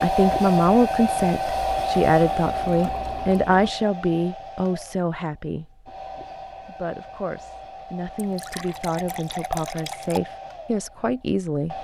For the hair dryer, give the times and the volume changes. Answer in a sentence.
You can hear the hair dryer from 0.0 to 11.7 s, getting quieter.